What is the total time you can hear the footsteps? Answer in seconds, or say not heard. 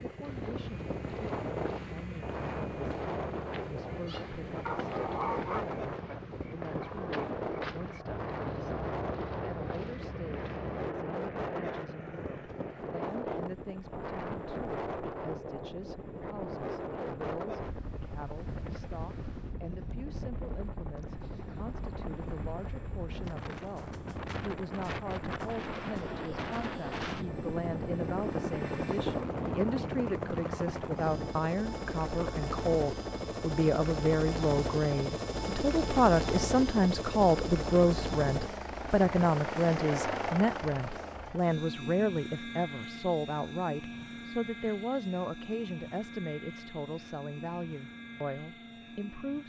11 s.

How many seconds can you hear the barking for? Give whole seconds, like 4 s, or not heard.
2 s.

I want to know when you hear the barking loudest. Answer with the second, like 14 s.
5 s.